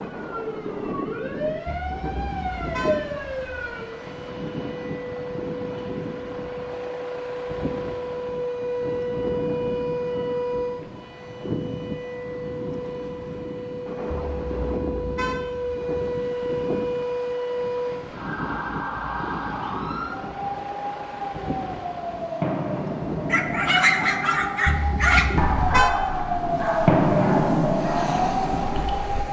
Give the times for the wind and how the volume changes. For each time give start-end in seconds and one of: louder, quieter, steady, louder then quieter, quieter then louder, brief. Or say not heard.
0.0-29.2 steady.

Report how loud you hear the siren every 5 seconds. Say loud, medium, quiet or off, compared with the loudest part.
medium, medium, medium, medium, medium, loud.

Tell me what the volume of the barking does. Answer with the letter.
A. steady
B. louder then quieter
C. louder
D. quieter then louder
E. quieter
E.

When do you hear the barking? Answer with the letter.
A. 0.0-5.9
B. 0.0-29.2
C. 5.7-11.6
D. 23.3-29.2
D.